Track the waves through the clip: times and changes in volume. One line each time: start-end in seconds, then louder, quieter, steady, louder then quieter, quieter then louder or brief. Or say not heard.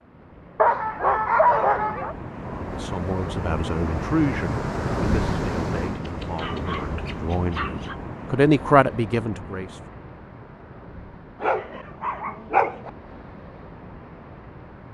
0.0-14.8 louder then quieter.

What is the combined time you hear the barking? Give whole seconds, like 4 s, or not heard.
5 s.